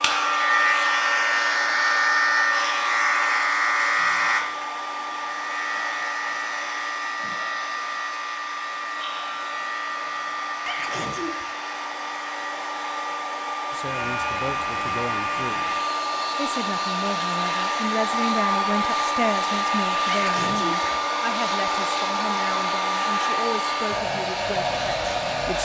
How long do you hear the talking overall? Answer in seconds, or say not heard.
12 s.